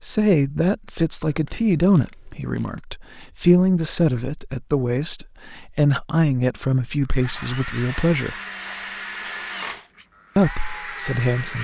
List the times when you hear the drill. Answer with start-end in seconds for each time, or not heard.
7.0-11.5.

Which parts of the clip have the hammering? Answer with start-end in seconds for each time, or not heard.
not heard.